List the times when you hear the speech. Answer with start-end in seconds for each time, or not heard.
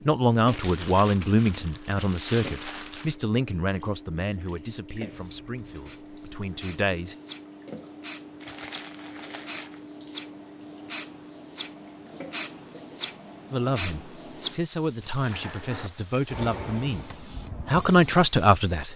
0.0-7.2, 13.5-18.9.